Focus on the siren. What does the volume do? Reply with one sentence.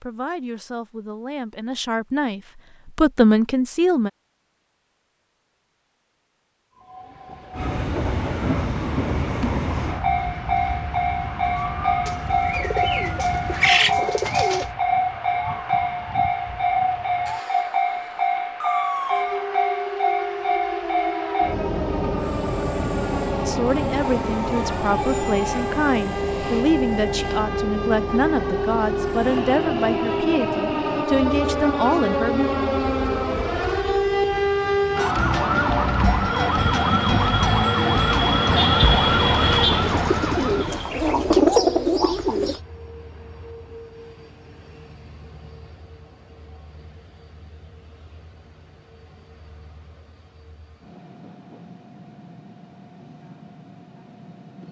The loudness of the siren goes up.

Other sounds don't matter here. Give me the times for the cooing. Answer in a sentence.
The cooing can be heard from 12.1 to 14.7 s and from 39.8 to 42.6 s.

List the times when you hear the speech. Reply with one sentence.
The speech can be heard from 0.0 to 4.1 s and from 23.4 to 32.5 s.